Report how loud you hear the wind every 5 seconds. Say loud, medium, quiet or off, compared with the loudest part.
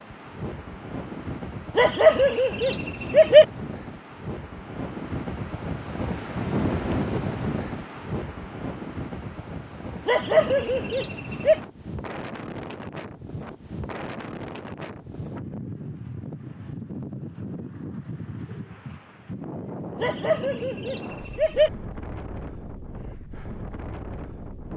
medium, loud, medium, medium, medium.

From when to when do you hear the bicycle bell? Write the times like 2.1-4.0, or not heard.
not heard.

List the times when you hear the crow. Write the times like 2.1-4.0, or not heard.
not heard.